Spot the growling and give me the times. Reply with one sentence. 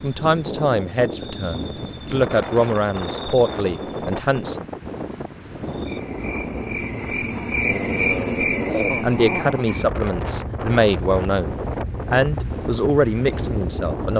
You can hear the growling from 7.6 to 9.7 s.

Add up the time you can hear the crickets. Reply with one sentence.
The crickets can be heard for 14 seconds in total.